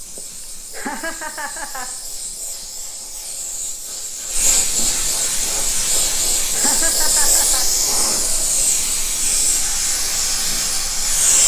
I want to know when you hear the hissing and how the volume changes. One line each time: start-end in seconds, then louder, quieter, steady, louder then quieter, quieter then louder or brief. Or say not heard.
0.0-11.4 louder.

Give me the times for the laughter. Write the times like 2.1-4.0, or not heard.
0.1-1.9, 6.0-7.7.